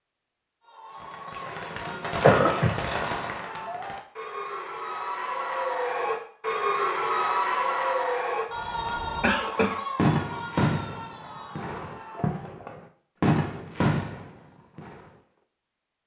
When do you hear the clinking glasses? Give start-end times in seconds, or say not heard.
not heard.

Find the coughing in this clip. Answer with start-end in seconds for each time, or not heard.
2.2-3.3, 9.2-9.8.